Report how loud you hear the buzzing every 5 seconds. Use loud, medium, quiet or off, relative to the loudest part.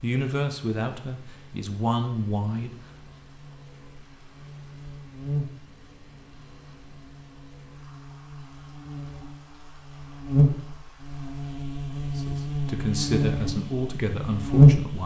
quiet, quiet, loud.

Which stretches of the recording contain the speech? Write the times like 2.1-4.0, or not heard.
0.0-2.7, 12.2-15.0.